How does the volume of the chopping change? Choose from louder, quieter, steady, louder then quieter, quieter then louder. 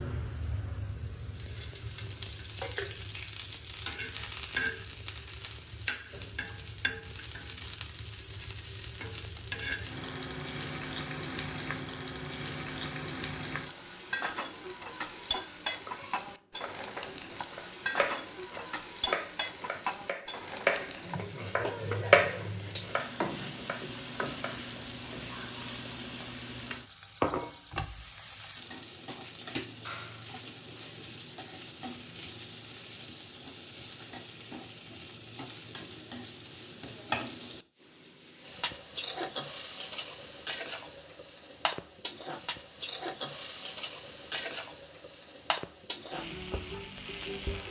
louder then quieter.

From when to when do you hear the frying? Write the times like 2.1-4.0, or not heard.
0.0-47.6.